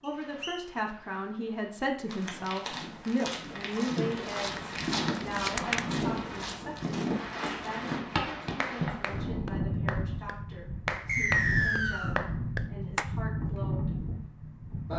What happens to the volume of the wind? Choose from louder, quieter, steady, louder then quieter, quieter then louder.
louder.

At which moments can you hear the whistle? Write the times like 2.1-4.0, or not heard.
0.1-0.7, 11.1-12.2.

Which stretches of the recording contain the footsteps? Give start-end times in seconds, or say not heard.
2.0-8.9.